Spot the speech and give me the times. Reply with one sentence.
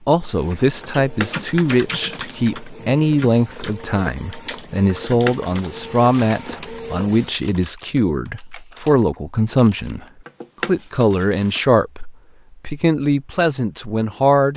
The speech can be heard from 0.1 to 10.1 s and from 10.7 to 14.5 s.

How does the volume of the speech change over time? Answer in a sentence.
The volume of the speech stays about the same.